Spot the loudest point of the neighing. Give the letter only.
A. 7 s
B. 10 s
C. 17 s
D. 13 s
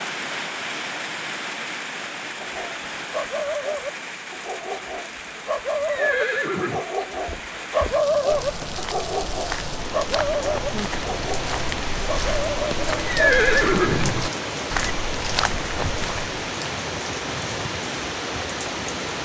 D.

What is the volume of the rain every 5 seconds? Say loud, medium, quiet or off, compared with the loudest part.
loud, medium, loud, loud.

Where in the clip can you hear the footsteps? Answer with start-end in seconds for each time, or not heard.
7.2-16.2.